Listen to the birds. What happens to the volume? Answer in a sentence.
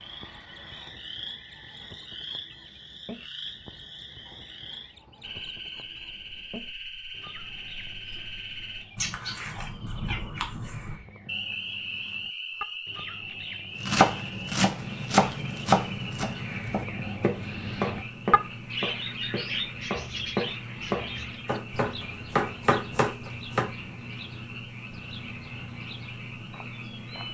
The loudness of the birds goes up, then down.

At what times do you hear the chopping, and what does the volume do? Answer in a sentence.
The chopping can be heard from 13.8 to 23.7 s, getting quieter then louder.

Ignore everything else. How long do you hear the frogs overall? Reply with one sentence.
You can hear the frogs for 27 seconds altogether.